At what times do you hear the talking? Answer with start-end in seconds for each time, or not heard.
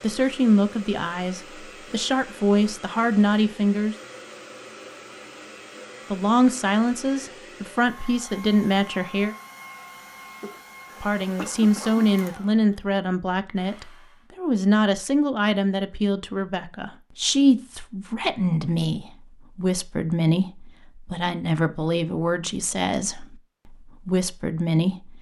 0.0-4.0, 6.1-9.3, 11.0-25.1.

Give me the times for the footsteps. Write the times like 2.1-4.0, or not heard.
not heard.